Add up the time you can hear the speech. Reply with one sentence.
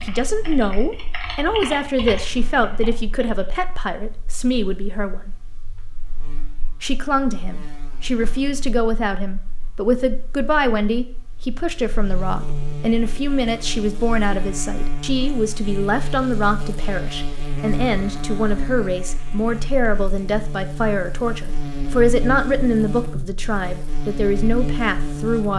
You can hear the speech for 24 seconds altogether.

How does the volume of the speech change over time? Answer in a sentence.
The volume of the speech stays about the same.